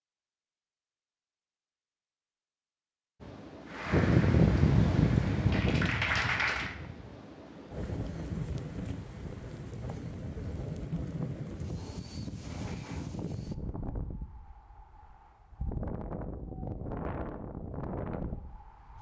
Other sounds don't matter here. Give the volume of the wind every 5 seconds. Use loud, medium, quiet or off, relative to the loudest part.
loud, medium, quiet, quiet.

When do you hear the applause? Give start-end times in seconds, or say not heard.
3.6-6.8.